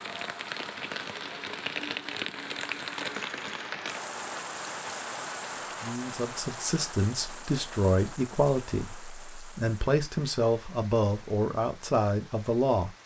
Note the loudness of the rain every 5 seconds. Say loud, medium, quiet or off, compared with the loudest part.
loud, medium, quiet.